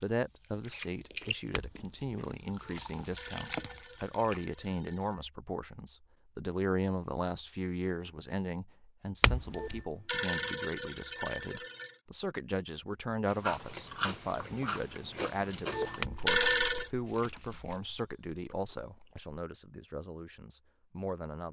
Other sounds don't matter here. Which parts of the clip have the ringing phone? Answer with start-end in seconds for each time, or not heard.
2.6-5.2, 9.6-12.0, 15.7-16.9.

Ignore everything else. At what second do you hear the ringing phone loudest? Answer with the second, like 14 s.
16 s.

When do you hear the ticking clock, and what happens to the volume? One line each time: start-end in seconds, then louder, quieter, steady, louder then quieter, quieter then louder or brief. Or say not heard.
not heard.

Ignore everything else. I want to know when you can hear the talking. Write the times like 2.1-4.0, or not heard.
0.0-21.4.